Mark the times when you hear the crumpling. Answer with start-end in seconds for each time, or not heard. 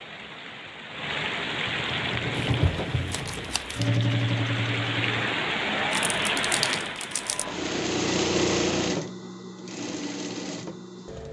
2.4-3.9, 5.9-7.5.